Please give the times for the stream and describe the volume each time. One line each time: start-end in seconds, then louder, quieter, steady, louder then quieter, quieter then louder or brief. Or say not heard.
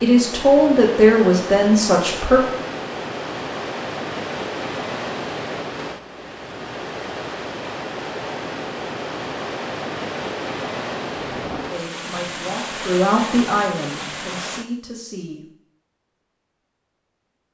0.0-14.7 steady.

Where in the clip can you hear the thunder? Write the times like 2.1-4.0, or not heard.
11.2-11.7.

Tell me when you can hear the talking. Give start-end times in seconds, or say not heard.
0.0-2.4, 11.7-15.4.